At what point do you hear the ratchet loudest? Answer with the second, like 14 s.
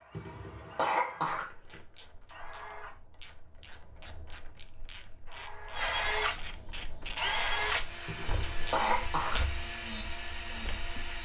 8 s.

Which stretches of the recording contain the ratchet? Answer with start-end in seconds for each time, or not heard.
1.2-9.5.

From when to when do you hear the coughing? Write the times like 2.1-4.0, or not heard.
0.1-1.8, 8.1-9.4.